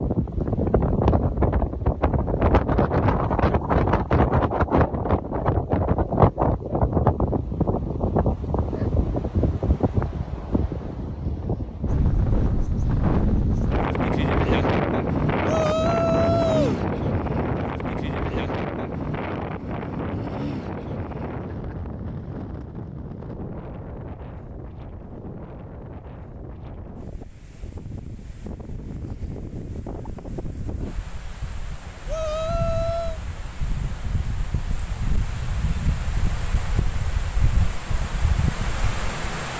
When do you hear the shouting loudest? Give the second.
16 s.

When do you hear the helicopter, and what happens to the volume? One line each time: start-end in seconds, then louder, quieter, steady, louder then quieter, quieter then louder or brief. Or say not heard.
not heard.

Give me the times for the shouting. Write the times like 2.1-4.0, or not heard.
15.4-16.8, 32.0-33.2.